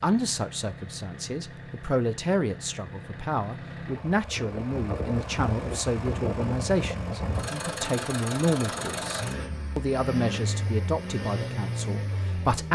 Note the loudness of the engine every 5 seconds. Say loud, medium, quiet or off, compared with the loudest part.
medium, loud, loud.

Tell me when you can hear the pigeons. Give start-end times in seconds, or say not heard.
not heard.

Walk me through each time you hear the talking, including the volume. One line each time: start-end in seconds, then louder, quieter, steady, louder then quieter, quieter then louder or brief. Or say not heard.
0.0-12.7 steady.